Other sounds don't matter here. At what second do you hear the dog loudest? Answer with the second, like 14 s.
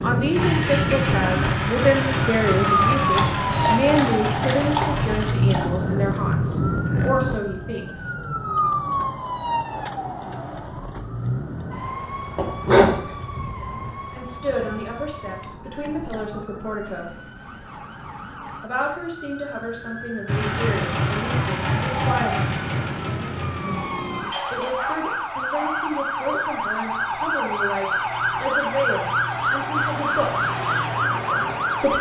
13 s.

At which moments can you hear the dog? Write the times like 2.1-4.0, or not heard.
2.9-5.7, 12.3-13.9, 24.3-26.1.